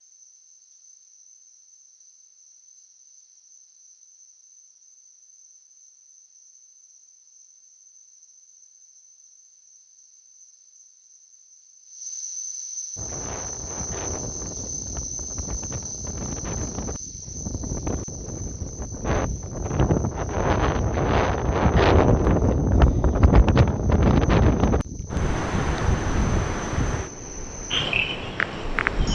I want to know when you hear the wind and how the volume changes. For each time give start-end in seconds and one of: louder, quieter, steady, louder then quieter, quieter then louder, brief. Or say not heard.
12.9-29.1 louder then quieter.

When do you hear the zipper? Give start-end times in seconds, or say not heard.
not heard.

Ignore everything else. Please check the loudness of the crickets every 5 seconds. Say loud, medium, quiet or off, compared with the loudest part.
quiet, quiet, medium, medium, quiet, loud.